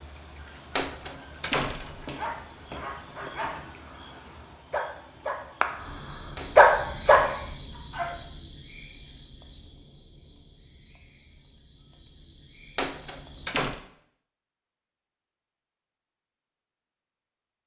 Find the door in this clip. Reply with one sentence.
The door can be heard from 0.8 to 2.0 s, from 6.3 to 7.4 s and from 12.8 to 13.8 s.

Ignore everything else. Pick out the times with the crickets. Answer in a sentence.
The crickets can be heard from 0.0 to 13.5 s.